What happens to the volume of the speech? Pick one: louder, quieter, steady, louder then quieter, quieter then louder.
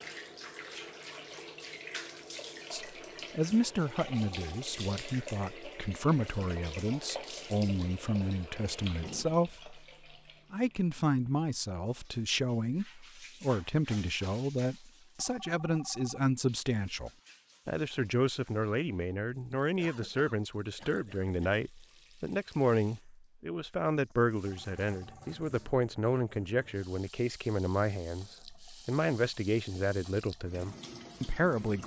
steady.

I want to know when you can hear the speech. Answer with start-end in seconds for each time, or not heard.
2.7-9.8, 10.5-31.8.